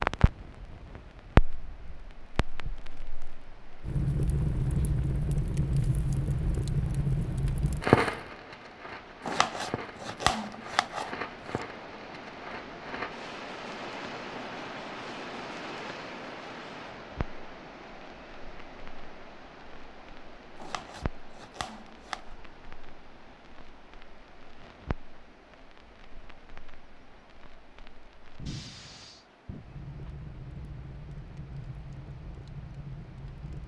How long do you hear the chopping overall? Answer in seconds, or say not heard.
4 s.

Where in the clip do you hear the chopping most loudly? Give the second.
10 s.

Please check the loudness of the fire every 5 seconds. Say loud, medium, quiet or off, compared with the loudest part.
loud, loud, quiet, quiet, quiet, quiet, quiet.